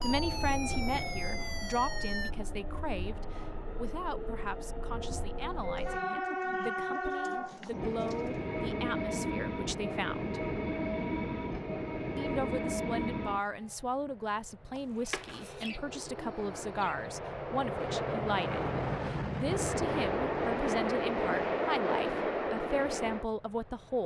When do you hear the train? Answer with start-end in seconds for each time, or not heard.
0.0-24.0.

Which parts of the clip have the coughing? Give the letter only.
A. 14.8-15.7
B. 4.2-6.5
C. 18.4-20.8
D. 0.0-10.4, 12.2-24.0
A.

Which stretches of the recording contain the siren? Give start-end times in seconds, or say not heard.
0.0-2.3.